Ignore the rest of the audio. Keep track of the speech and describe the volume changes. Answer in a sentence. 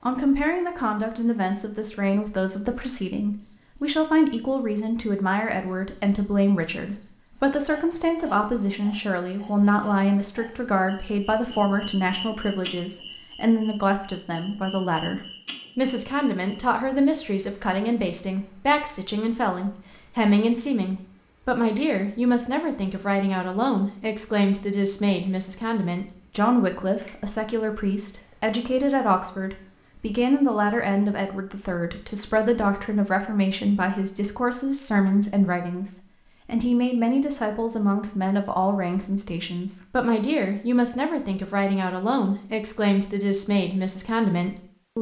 The volume of the speech stays about the same.